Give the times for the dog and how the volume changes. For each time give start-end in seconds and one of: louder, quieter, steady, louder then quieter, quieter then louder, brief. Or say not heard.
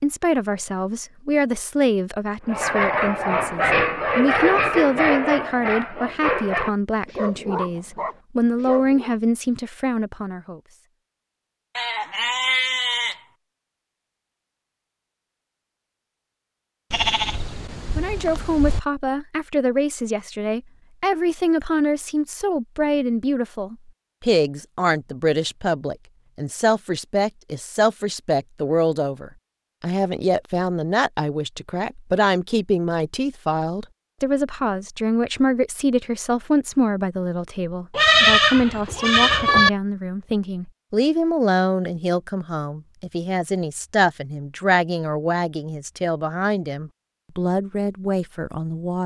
2.5-9.2 quieter.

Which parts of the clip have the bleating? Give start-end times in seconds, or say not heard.
11.8-13.2, 16.9-18.8, 37.9-39.7.